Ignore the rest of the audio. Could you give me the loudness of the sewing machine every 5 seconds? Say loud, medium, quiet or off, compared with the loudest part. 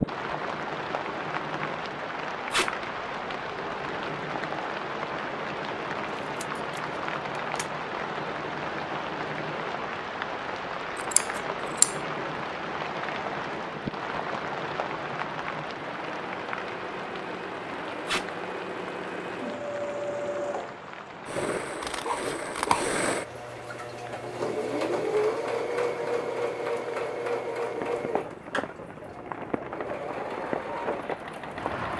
medium, medium, medium, medium, loud, loud, medium.